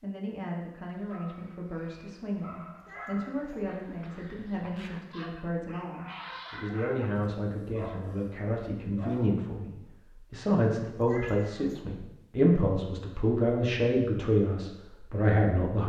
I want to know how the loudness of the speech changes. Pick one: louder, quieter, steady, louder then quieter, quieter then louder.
louder.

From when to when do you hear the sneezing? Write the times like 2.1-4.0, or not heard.
not heard.